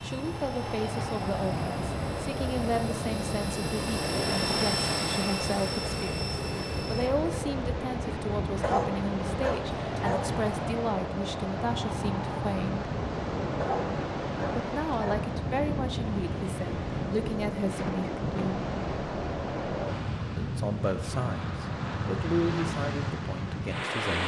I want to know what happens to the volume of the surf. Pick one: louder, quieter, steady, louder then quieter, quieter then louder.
steady.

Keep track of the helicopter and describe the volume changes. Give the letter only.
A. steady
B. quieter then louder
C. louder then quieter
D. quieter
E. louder
C.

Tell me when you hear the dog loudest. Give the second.
9 s.